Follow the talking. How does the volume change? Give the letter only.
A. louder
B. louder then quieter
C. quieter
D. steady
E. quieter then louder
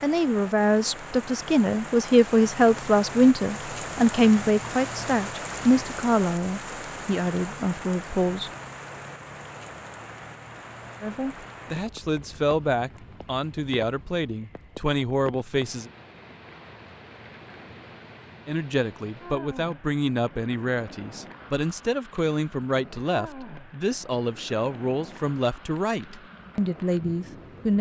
C.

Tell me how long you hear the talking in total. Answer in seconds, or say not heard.
23 s.